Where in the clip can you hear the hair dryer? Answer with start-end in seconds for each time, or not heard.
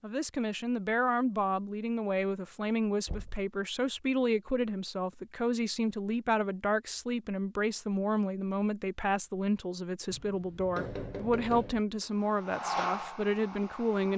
12.1-14.1.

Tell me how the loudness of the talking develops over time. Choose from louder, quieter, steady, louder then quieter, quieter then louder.
steady.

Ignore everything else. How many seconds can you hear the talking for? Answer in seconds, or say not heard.
14 s.